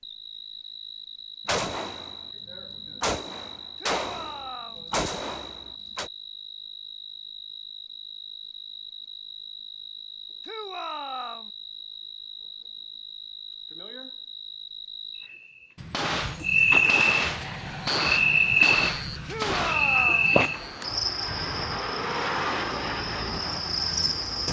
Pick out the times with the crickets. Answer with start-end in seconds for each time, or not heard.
0.0-24.4.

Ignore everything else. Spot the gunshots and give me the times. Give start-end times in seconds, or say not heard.
1.4-6.1, 15.8-20.6.